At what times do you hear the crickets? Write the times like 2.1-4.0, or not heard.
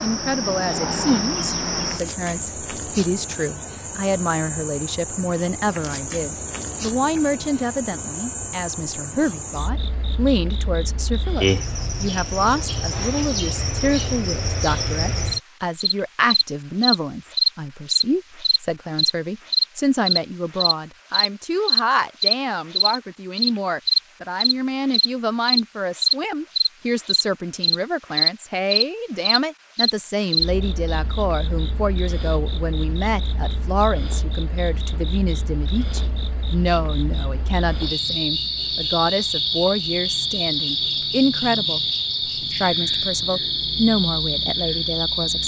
0.0-45.4.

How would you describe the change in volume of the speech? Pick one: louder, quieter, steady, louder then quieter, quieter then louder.
steady.